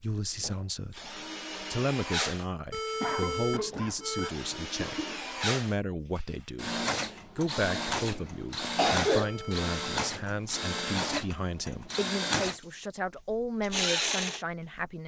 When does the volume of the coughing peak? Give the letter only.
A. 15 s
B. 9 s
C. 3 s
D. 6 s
B.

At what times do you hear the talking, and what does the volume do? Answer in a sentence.
The talking can be heard from 0.0 to 15.0 s, at a steady volume.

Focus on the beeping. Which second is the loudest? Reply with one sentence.
The volume of the beeping peaks at 3 seconds.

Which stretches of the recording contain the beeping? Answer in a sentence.
The beeping can be heard from 2.7 to 4.3 s and from 9.2 to 10.8 s.